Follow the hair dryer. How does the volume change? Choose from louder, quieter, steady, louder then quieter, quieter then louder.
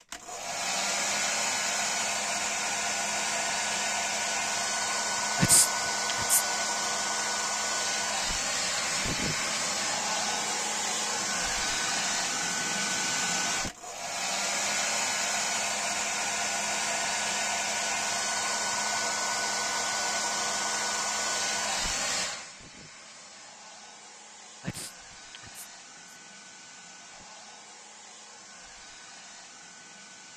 quieter.